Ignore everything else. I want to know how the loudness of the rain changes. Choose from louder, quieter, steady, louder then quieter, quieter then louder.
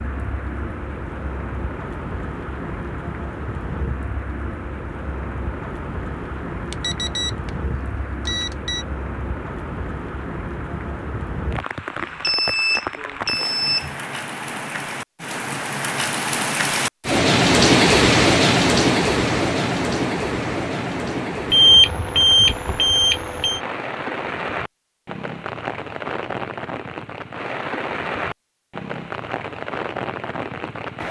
louder then quieter.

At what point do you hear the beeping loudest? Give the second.
22 s.